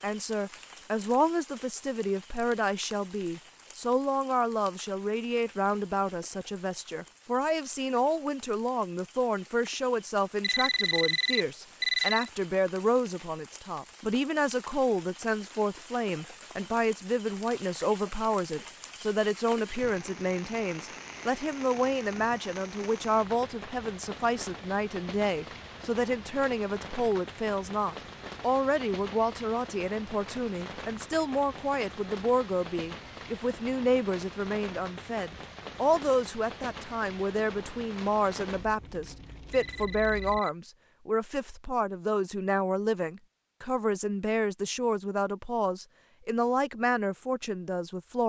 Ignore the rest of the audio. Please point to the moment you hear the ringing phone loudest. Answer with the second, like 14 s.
12 s.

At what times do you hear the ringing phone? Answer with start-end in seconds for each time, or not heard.
10.4-12.3, 39.5-40.5.